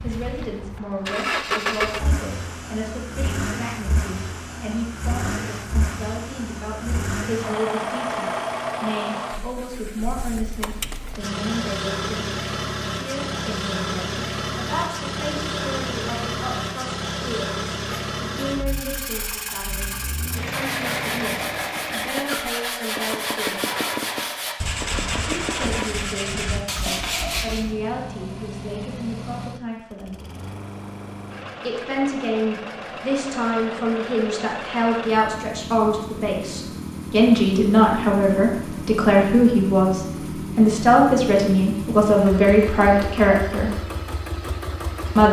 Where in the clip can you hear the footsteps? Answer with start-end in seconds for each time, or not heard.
not heard.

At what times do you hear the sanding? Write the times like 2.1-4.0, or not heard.
17.8-27.6.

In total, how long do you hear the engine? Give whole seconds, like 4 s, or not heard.
45 s.